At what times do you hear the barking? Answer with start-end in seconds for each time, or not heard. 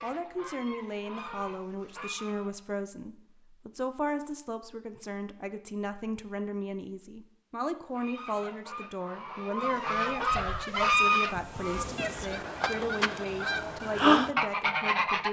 not heard.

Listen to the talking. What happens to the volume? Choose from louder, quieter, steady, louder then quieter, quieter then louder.
steady.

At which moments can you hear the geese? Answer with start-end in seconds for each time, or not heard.
0.0-2.5, 7.9-15.2.